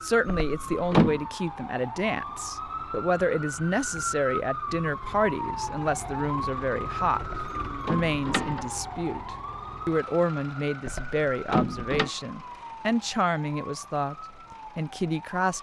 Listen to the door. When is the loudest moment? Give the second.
1 s.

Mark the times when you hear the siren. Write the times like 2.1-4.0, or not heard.
0.0-15.5.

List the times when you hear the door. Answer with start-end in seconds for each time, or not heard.
0.5-1.2, 7.2-8.7, 10.8-12.1.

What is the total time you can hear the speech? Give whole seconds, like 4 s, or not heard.
14 s.